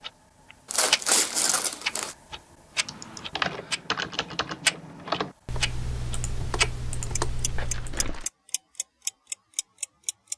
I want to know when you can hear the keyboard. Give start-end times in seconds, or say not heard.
2.7-8.2.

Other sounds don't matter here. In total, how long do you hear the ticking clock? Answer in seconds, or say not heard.
10 s.